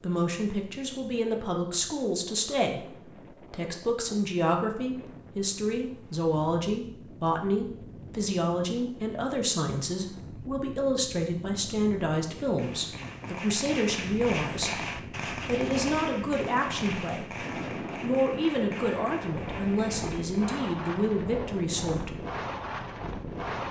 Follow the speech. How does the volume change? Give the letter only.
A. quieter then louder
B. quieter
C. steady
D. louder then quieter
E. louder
C.